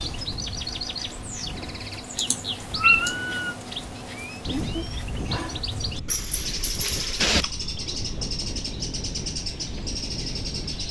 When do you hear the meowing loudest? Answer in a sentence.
The volume of the meowing peaks at 3 seconds.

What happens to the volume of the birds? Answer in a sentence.
The volume of the birds stays about the same.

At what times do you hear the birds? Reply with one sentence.
The birds can be heard from 0.0 to 10.8 s.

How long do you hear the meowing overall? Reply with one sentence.
The meowing can be heard for 3 seconds in total.